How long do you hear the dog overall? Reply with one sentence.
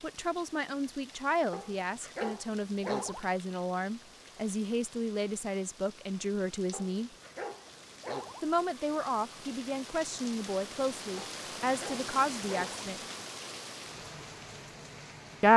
You can hear the dog for 5 seconds altogether.